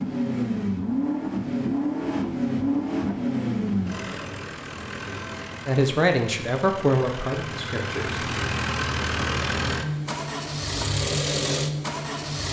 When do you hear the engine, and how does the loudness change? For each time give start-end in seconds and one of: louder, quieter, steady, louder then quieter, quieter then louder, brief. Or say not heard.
0.0-12.4 quieter then louder.